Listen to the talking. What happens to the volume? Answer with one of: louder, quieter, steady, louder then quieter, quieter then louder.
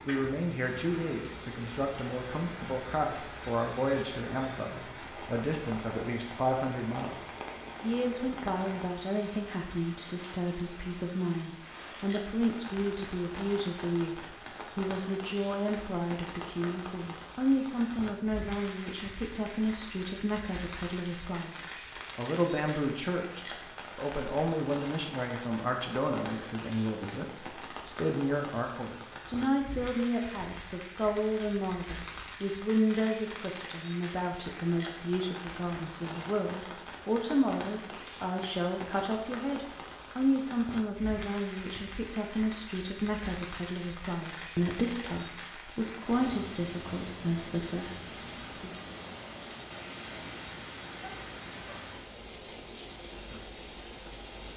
steady.